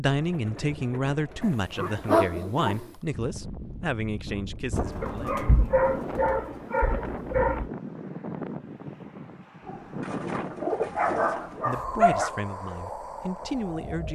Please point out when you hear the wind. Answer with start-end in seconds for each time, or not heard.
3.1-14.1.